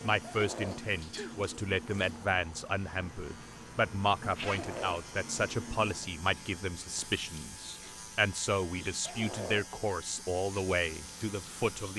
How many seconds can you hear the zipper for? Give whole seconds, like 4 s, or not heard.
2 s.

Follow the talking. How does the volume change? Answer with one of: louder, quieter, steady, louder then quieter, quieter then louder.
steady.